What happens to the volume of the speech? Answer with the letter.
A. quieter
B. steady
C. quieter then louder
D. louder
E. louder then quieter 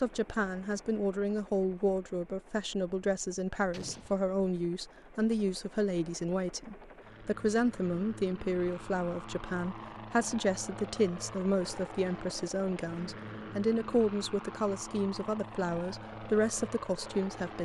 B.